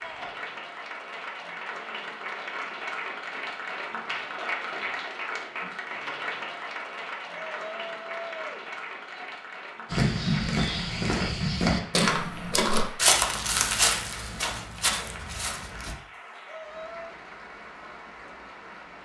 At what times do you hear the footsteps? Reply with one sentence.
You can hear the footsteps from 9.9 to 15.9 s.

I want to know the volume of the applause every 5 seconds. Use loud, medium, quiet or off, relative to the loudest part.
loud, loud, medium, medium.